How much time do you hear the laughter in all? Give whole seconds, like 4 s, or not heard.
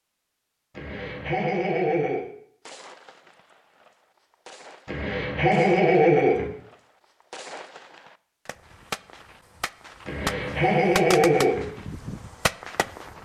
5 s.